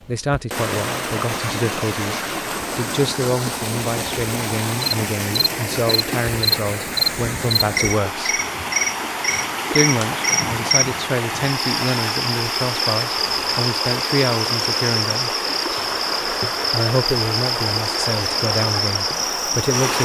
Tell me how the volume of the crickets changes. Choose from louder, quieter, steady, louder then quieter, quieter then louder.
steady.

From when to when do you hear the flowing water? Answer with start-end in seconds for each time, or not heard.
0.0-20.0.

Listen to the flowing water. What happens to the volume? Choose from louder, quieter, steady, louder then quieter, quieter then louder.
steady.